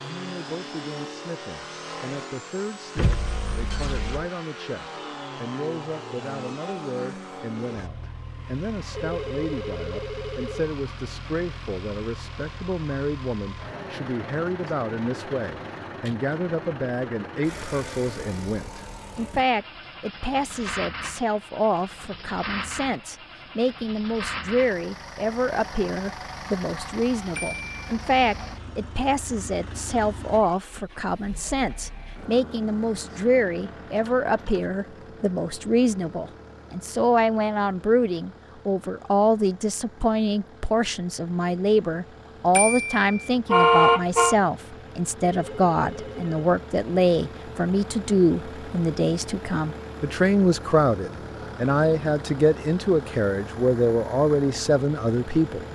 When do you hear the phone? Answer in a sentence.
You can hear the phone from 8.9 to 10.7 s and from 45.2 to 46.5 s.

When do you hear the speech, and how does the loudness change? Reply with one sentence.
You can hear the speech from 0.0 to 55.7 s, getting louder.